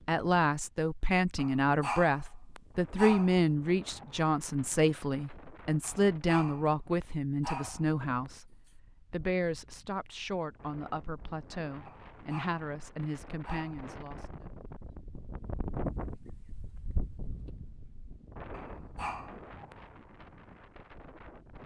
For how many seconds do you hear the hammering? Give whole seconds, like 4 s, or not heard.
not heard.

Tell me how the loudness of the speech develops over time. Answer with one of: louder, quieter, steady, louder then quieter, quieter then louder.
quieter.